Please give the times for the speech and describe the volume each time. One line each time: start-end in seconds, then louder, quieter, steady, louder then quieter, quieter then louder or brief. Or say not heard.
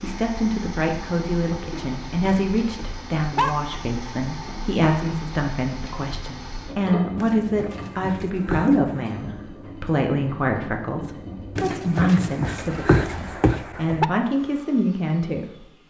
0.0-15.7 steady.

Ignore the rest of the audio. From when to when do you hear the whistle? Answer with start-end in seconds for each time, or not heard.
not heard.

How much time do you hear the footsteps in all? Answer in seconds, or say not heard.
not heard.